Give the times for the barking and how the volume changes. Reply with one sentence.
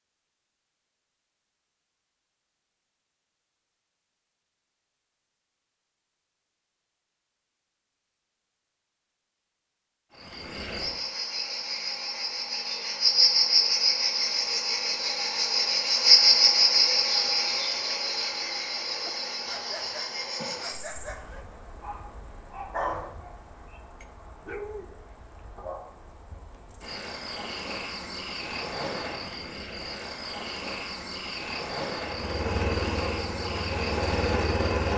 The barking can be heard from 19.0 to 24.9 s, getting louder then quieter; and briefly from 25.6 to 26.0 s.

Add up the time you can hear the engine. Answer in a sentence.
You can hear the engine for 3 seconds altogether.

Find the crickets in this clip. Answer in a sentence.
The crickets can be heard from 10.2 to 34.9 s.